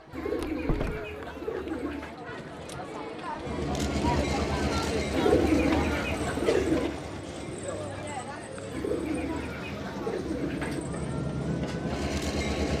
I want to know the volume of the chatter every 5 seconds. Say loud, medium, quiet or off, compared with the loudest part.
loud, loud, medium.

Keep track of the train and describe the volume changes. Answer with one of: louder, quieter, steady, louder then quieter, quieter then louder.
quieter then louder.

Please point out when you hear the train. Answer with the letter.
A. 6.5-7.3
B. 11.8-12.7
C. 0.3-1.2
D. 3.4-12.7
D.